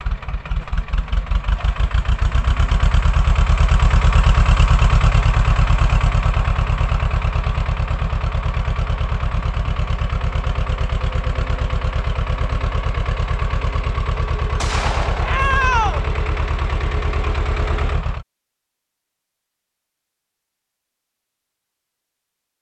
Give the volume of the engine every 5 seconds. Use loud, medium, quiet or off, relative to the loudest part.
loud, loud, loud, loud, off.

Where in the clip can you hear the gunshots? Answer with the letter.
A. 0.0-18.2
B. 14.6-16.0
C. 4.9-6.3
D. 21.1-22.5
B.